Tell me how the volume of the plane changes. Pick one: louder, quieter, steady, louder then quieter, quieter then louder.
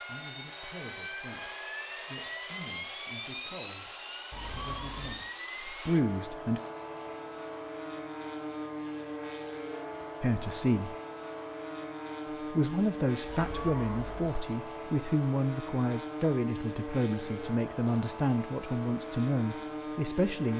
steady.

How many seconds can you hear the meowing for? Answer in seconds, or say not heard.
2 s.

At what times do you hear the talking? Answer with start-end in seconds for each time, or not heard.
0.0-6.6, 10.2-10.9, 12.4-20.5.